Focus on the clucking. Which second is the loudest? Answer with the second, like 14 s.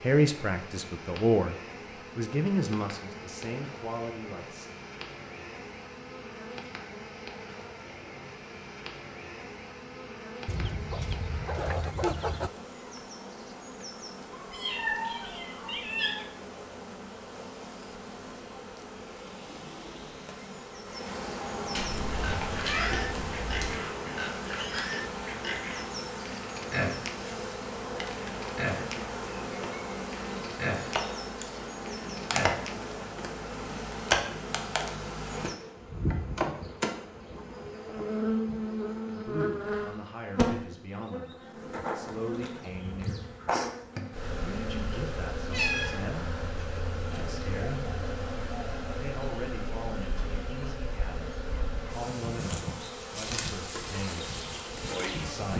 12 s.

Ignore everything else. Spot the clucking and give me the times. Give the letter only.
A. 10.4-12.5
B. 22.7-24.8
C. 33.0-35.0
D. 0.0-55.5
A.